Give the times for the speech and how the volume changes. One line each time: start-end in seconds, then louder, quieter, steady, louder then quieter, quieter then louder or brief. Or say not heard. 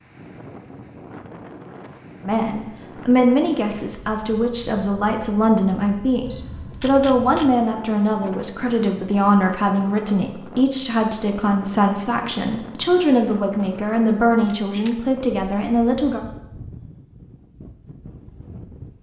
2.2-16.2 steady.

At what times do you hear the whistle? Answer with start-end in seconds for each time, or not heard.
not heard.